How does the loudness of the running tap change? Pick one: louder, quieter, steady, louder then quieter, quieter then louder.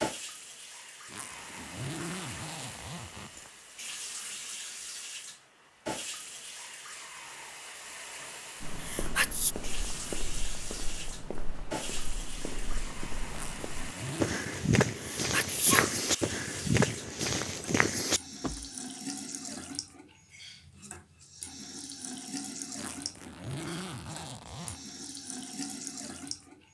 steady.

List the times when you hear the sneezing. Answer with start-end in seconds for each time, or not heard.
8.8-9.6, 14.9-16.4.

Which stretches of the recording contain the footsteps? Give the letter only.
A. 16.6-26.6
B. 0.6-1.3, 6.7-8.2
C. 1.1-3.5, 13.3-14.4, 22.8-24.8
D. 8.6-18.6
D.